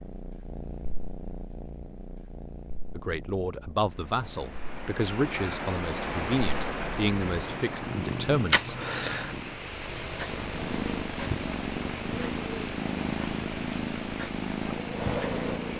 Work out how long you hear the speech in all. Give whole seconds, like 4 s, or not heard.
6 s.